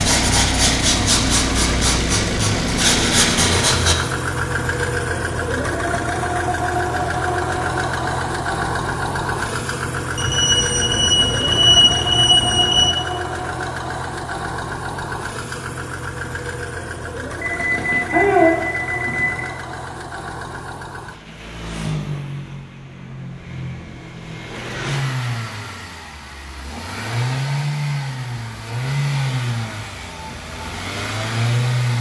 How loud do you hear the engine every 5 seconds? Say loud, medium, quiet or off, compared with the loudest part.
loud, loud, loud, medium, medium, loud, loud.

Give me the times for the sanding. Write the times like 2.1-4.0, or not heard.
0.0-4.0.